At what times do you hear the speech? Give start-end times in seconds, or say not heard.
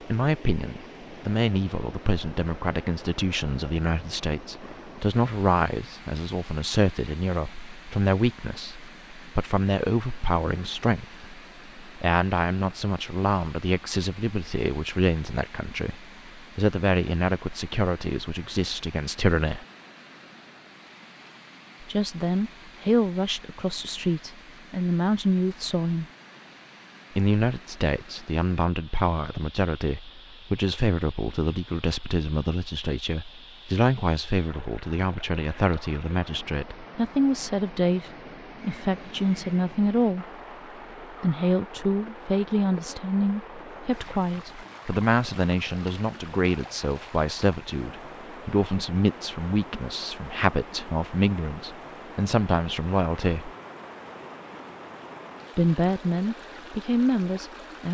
0.1-19.6, 21.8-26.1, 27.1-40.2, 41.1-53.5, 55.5-57.8.